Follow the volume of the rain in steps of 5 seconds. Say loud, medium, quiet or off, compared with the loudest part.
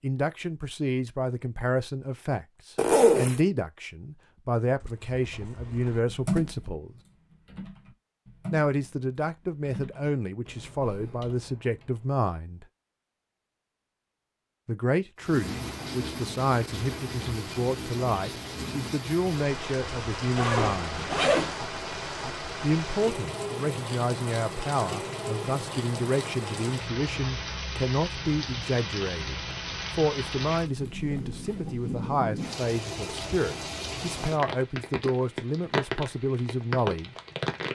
off, off, off, loud, loud, loud, loud, loud.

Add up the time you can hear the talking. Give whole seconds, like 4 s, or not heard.
32 s.